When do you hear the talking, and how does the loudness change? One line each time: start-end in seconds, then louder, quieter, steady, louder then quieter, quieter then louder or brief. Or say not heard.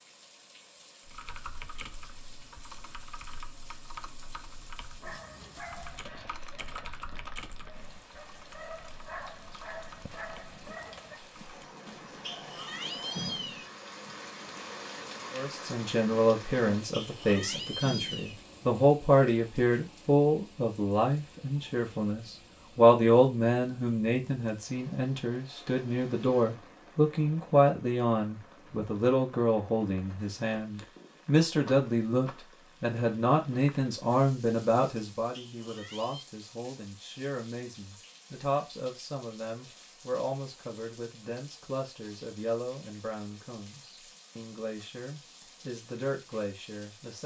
15.3-47.2 quieter.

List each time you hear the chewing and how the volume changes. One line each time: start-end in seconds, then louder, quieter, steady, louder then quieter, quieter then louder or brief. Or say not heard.
not heard.